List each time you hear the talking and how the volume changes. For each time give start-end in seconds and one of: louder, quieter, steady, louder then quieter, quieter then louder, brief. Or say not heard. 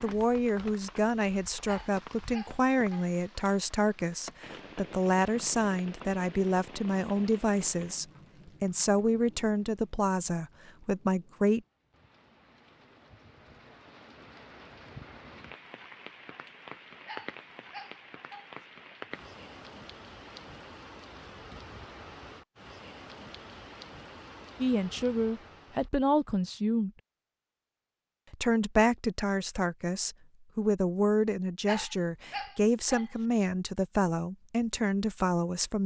0.0-11.6 steady
24.6-26.9 brief
28.3-35.8 steady.